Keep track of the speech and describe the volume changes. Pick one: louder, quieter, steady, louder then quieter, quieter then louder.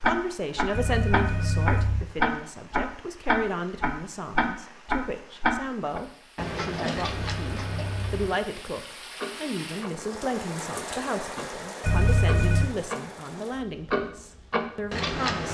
steady.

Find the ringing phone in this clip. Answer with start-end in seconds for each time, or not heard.
0.7-2.0, 7.0-8.3, 11.8-12.7.